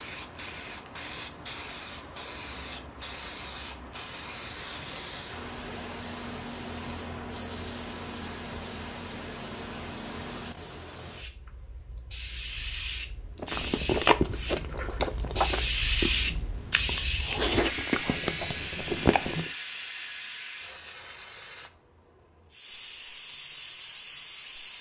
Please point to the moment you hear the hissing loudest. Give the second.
16 s.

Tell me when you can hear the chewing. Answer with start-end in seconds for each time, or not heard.
13.4-19.5.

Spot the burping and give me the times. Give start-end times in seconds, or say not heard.
not heard.